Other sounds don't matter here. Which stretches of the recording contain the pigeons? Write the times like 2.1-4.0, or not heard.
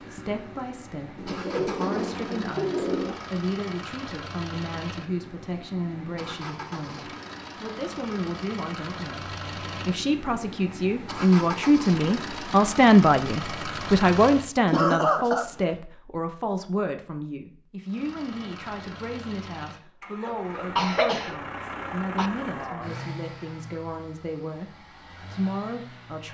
1.1-3.1.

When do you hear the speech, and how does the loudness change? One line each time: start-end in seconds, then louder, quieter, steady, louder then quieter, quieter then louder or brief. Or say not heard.
0.0-26.2 louder then quieter.